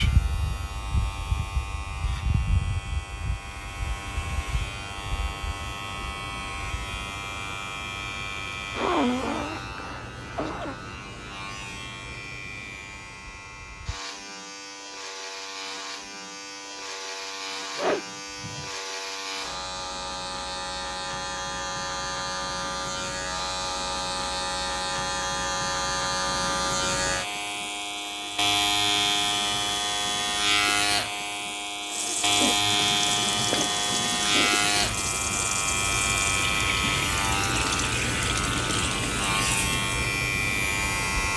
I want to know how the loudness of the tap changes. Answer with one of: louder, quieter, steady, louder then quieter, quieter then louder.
louder.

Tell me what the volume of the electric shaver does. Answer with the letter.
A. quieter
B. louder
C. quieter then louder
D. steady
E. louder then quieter
B.